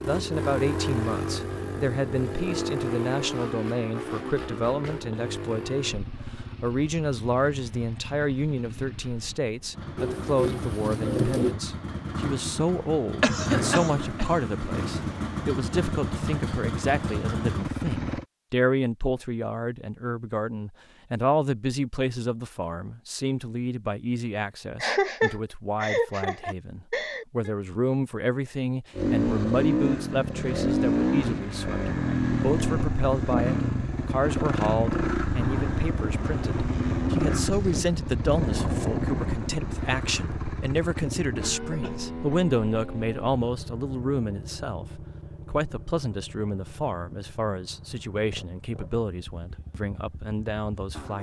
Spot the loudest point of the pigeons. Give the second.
11 s.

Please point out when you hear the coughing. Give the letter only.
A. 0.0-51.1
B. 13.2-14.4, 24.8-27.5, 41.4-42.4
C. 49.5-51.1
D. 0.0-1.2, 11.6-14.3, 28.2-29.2
B.